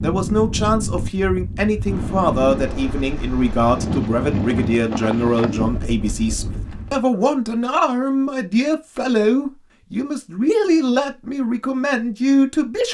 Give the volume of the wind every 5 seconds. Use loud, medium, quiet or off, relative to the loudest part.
loud, loud, off.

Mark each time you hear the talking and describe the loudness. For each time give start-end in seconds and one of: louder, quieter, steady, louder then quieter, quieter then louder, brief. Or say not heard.
0.0-12.8 steady.